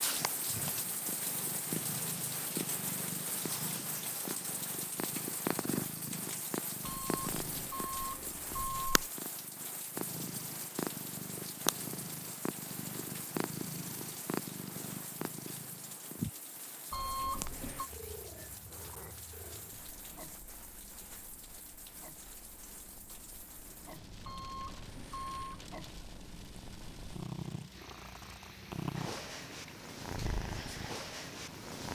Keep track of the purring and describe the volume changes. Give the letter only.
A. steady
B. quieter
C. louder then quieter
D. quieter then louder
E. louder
D.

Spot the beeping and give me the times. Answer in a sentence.
You can hear the beeping from 6.8 to 9.1 s, from 16.9 to 17.9 s and from 24.2 to 25.6 s.